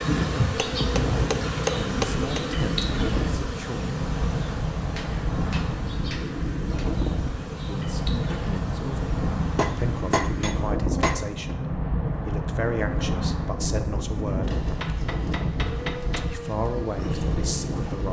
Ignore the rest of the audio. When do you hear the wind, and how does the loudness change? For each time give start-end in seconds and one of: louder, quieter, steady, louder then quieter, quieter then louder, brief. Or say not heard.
0.0-18.0 steady.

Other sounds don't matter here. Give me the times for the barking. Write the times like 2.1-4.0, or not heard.
not heard.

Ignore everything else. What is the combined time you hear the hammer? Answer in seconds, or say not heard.
7 s.